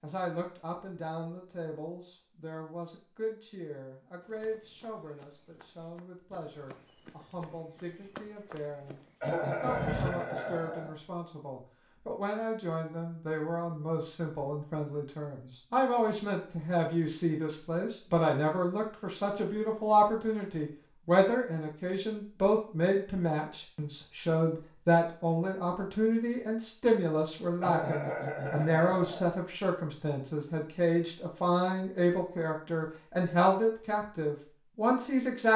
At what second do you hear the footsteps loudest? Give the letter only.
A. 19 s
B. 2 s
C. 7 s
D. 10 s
D.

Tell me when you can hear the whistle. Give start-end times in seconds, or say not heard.
not heard.